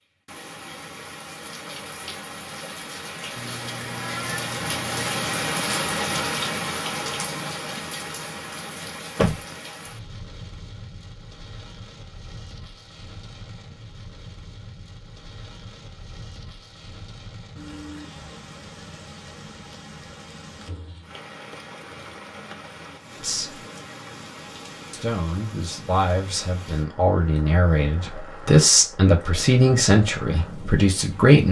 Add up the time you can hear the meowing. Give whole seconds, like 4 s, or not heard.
2 s.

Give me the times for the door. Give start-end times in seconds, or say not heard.
8.8-9.4.